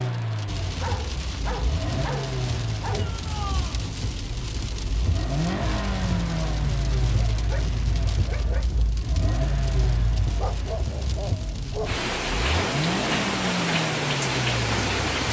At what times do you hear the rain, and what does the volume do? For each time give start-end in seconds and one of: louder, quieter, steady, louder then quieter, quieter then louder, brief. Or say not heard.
0.0-15.2 louder.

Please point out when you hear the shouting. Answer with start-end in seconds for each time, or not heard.
2.9-3.8.